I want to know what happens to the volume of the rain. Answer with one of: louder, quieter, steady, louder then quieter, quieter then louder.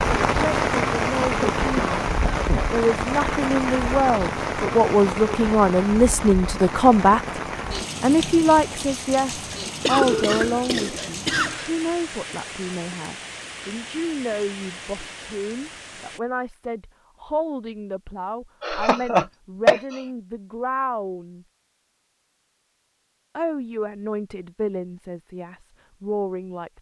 quieter.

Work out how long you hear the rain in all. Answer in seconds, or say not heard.
16 s.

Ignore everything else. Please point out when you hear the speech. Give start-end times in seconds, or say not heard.
0.1-7.2, 8.0-21.4, 23.4-26.7.